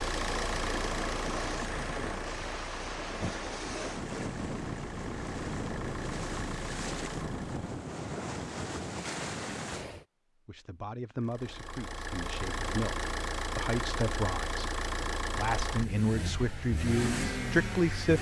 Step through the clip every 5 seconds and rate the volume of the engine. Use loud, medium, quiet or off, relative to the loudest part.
loud, medium, loud, loud.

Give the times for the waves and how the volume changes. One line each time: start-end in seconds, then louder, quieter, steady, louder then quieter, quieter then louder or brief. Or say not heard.
0.0-10.1 steady.